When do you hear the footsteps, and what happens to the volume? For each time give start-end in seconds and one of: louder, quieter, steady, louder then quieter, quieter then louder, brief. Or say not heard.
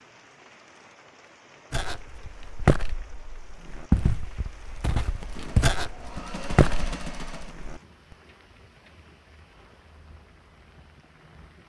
1.7-7.8 quieter then louder.